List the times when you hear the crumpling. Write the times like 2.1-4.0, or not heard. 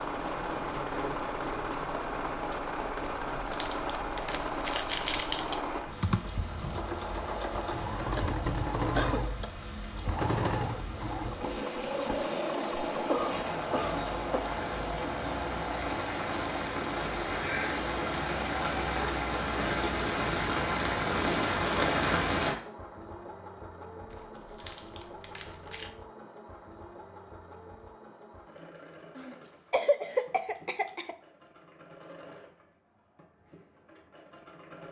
3.0-5.6, 24.1-25.9.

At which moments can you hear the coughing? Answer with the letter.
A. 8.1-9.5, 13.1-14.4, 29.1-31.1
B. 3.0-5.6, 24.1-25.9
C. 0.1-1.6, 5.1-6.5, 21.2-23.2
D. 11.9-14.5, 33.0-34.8
A.